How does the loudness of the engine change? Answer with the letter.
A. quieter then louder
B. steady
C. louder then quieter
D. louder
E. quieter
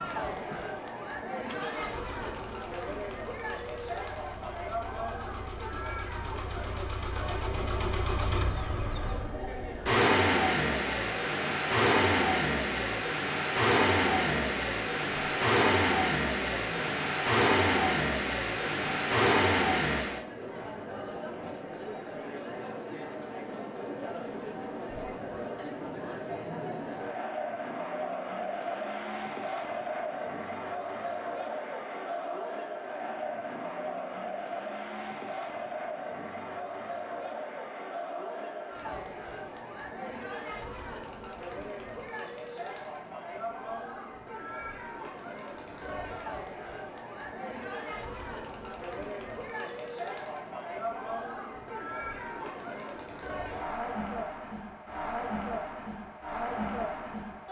D.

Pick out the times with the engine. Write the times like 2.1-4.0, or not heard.
0.0-20.2.